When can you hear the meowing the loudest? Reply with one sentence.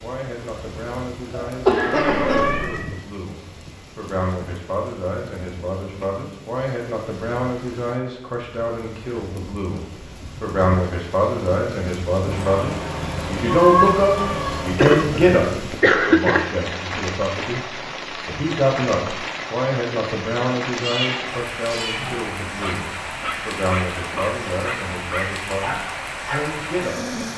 The loudest moment of the meowing is at 14 seconds.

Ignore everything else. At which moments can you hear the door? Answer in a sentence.
You can't hear the door here.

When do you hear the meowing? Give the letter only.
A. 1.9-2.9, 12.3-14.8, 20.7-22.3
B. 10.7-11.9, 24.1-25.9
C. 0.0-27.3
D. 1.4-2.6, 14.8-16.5
A.